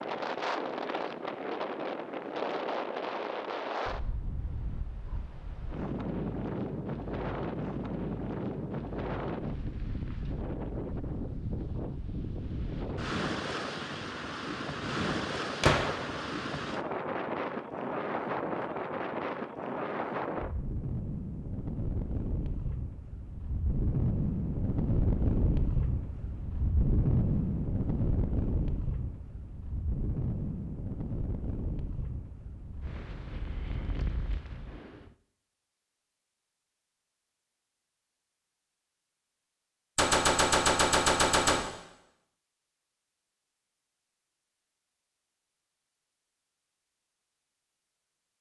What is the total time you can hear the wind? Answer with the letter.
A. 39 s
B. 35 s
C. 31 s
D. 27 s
B.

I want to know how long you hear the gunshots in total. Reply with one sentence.
The gunshots can be heard for 2 seconds in total.